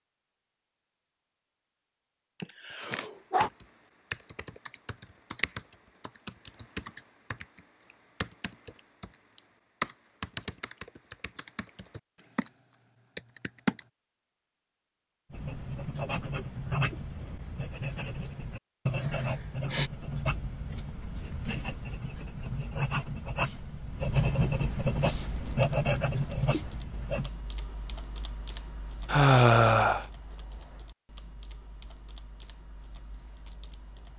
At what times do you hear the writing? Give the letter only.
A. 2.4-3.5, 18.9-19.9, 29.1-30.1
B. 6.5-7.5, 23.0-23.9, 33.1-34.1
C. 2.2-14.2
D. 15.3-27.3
D.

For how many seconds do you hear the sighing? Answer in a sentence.
You can hear the sighing for 3 seconds altogether.